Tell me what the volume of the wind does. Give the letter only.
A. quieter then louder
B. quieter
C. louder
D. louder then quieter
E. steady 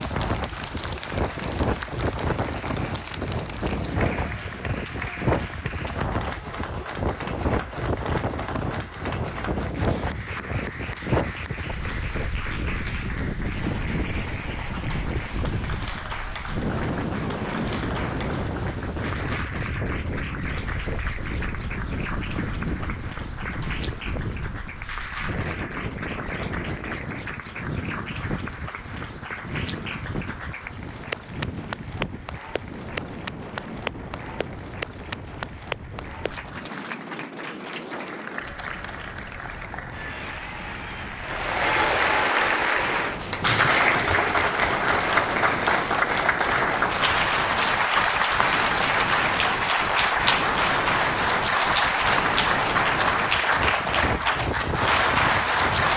A.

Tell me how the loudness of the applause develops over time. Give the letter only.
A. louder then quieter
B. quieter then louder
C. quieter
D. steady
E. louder
E.